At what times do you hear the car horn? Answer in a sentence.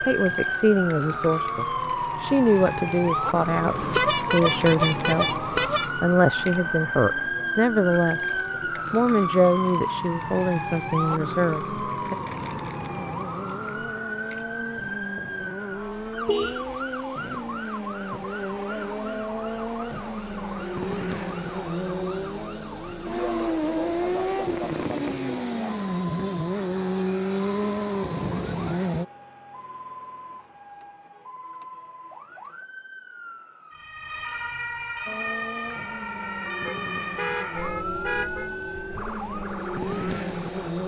You can hear the car horn from 3.7 to 5.9 s, from 16.2 to 16.8 s and from 36.6 to 38.5 s.